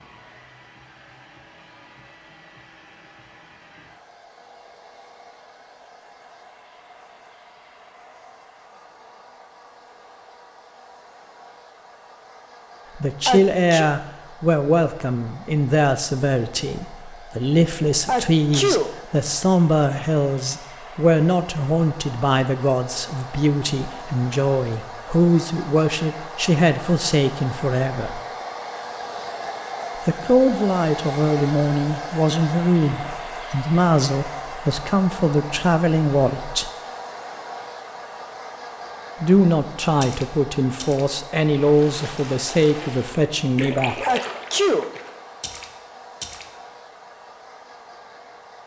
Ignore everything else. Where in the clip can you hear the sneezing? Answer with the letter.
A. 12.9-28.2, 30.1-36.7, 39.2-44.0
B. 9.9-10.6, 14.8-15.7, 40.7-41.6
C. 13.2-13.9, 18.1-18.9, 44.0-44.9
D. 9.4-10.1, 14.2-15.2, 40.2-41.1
C.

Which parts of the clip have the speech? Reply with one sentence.
The speech can be heard from 12.9 to 28.2 s, from 30.1 to 36.7 s and from 39.2 to 44.0 s.